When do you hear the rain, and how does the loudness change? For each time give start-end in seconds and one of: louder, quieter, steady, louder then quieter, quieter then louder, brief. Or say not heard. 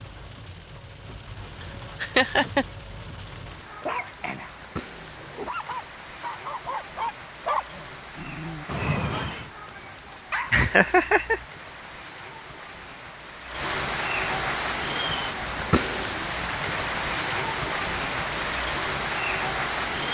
0.0-20.0 louder.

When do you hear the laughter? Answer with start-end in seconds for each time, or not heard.
1.6-2.6, 10.5-11.4.